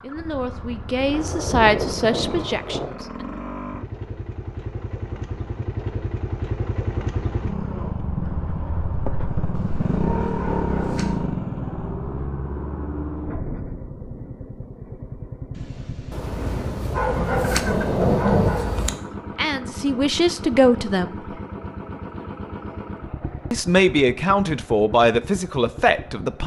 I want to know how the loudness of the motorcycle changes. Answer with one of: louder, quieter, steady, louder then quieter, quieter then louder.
louder then quieter.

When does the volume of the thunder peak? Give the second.
18 s.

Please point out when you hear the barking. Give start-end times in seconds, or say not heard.
9.5-11.3, 16.1-19.0.